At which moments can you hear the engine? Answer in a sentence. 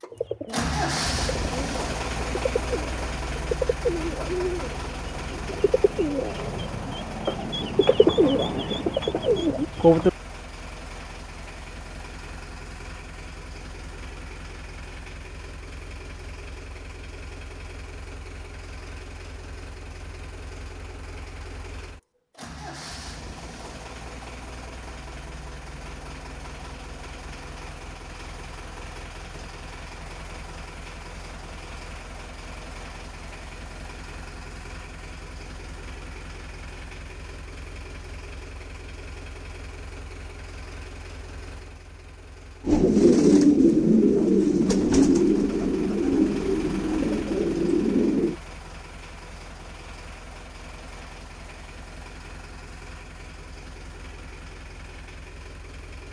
The engine can be heard from 0.0 to 56.0 s.